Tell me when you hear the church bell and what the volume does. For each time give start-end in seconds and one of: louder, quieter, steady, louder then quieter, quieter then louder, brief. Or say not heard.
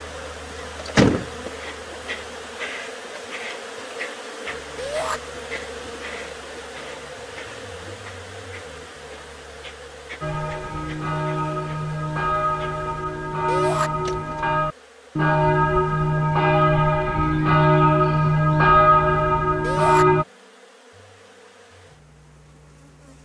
10.2-20.2 louder.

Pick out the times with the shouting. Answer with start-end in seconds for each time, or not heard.
4.8-5.2, 13.4-13.9, 19.6-20.1.